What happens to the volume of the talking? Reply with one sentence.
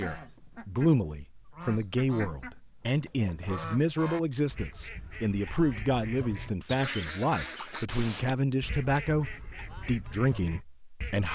The volume of the talking stays about the same.